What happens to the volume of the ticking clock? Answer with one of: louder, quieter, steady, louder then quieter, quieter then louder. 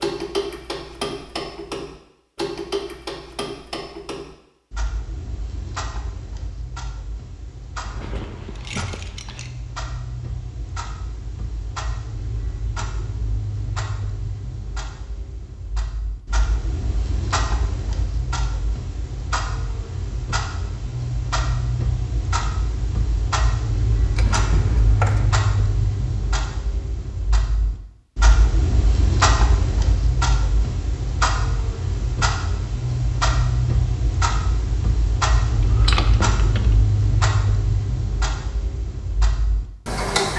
louder.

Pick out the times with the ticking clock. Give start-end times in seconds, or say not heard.
0.0-40.3.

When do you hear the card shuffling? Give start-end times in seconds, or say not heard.
not heard.